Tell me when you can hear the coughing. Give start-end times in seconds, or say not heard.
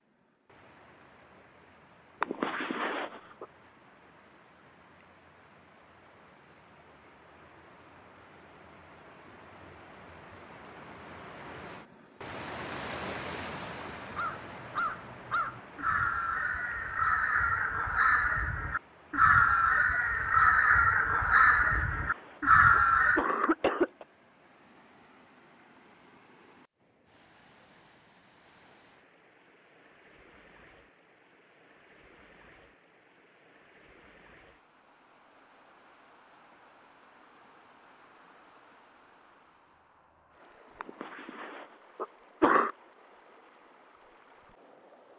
2.2-3.5, 21.6-24.1, 40.8-42.7.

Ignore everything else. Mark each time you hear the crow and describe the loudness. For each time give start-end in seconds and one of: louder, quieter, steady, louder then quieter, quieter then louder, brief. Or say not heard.
14.0-23.2 louder.